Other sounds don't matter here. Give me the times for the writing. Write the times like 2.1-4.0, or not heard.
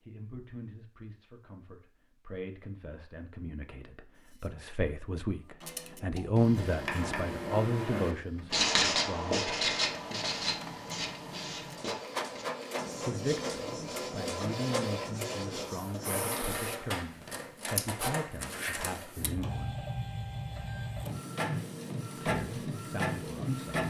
6.5-16.3.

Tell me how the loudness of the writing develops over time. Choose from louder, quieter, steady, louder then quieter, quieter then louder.
quieter.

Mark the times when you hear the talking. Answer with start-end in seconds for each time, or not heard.
0.0-9.5, 13.1-19.9, 22.1-23.8.